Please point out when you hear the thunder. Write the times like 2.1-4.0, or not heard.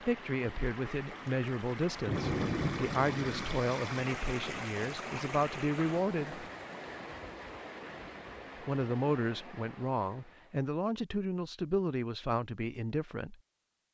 2.0-3.5.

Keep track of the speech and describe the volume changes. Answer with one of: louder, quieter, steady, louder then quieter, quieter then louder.
steady.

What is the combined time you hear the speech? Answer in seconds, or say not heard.
11 s.